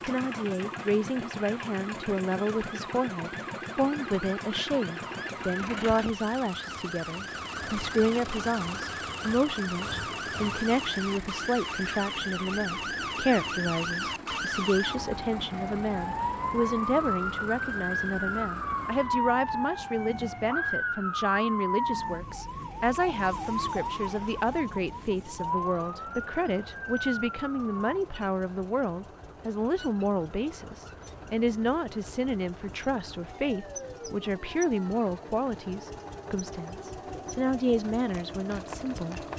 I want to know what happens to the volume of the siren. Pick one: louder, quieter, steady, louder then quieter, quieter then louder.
louder then quieter.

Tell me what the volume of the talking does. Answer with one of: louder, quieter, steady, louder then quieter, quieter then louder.
steady.